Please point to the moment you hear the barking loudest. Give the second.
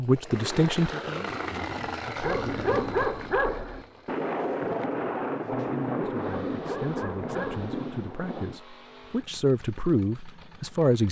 3 s.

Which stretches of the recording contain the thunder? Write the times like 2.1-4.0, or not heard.
4.0-8.6.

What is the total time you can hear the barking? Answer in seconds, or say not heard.
3 s.